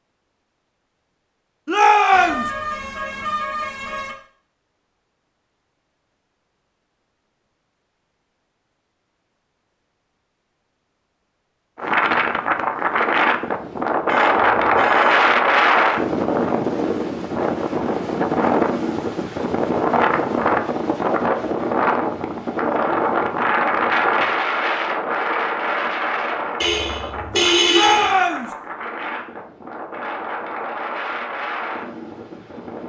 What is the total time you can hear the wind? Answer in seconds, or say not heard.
21 s.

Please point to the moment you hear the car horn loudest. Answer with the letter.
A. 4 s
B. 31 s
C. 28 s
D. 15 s
C.